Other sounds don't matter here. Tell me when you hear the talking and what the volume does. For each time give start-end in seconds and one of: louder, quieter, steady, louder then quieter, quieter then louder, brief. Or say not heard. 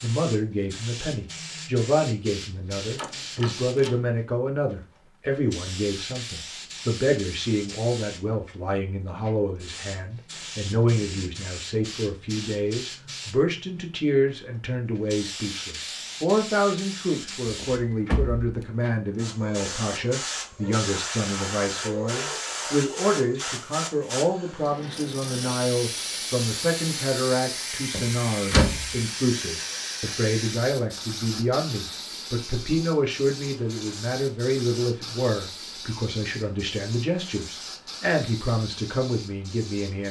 0.0-40.0 steady.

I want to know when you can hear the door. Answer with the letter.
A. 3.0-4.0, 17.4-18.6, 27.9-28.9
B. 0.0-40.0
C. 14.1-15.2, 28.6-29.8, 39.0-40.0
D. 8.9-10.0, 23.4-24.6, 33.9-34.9
A.